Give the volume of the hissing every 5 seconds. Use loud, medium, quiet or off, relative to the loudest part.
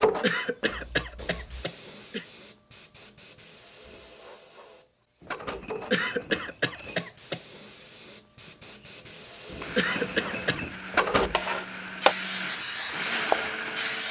medium, medium, loud.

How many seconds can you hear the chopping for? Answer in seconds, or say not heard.
3 s.